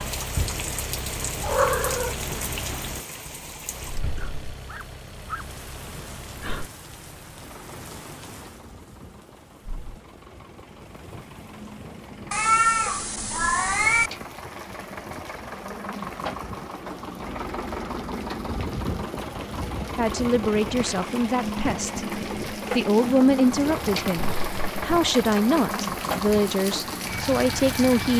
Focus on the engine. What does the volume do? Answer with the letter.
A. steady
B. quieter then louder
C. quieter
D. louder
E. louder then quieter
B.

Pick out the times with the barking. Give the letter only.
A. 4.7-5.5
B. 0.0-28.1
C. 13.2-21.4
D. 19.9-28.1
A.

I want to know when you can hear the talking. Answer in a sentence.
You can hear the talking from 19.9 to 28.1 s.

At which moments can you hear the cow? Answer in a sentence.
The cow can't be heard in this clip.